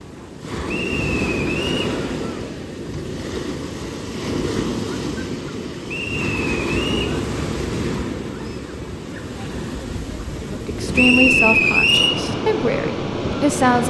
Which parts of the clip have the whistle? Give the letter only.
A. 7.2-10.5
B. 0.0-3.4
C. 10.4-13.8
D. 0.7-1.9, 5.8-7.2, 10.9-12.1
D.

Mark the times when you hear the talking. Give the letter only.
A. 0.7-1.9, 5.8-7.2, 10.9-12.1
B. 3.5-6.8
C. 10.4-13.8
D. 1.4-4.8
C.